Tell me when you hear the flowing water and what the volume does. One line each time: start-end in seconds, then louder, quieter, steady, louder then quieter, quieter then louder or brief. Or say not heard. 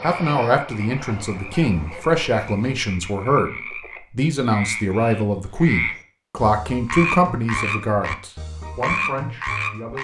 not heard.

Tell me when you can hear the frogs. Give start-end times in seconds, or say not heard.
0.0-9.9.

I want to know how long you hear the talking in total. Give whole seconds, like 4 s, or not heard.
10 s.